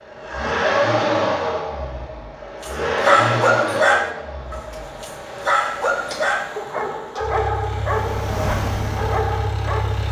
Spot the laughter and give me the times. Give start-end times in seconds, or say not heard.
not heard.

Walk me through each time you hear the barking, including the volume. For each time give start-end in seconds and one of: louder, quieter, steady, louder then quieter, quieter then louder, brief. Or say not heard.
2.6-10.0 quieter.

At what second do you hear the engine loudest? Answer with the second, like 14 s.
1 s.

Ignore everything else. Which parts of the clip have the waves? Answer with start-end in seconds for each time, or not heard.
4.5-10.0.